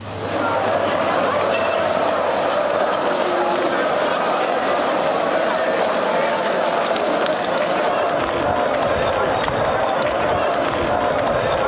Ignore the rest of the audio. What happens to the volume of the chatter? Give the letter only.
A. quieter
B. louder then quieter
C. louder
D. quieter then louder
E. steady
E.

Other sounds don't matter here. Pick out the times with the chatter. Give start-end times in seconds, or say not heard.
0.0-11.6.